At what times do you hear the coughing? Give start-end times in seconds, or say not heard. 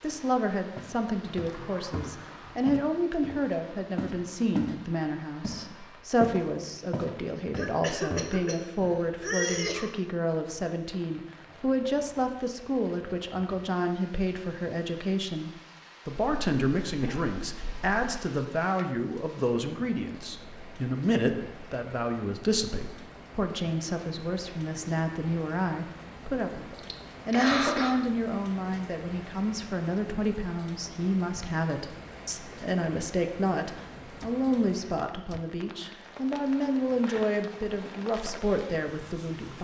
7.5-8.6, 9.2-9.9, 16.1-18.1, 26.8-27.9.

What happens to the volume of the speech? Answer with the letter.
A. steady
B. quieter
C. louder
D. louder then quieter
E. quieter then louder
A.